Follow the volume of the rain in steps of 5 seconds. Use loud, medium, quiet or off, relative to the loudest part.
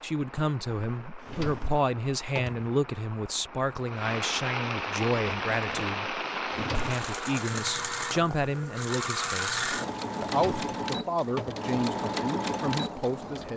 loud, loud, medium.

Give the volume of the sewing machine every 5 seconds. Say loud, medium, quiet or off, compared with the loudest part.
off, loud, loud.